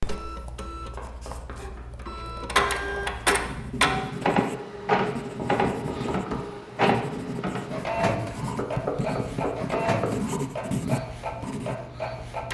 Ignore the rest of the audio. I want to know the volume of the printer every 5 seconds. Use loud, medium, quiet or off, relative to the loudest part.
loud, loud, medium.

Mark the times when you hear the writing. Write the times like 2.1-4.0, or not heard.
3.2-11.8.